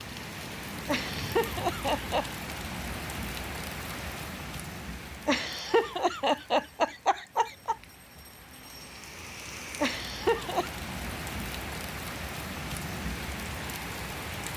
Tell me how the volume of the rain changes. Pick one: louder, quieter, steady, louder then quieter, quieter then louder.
quieter then louder.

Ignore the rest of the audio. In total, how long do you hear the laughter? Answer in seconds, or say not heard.
5 s.